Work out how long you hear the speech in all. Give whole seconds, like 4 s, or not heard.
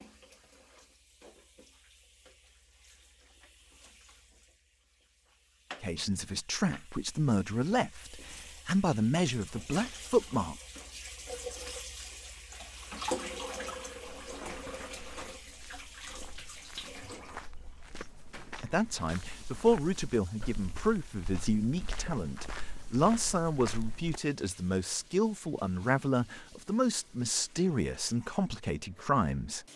16 s.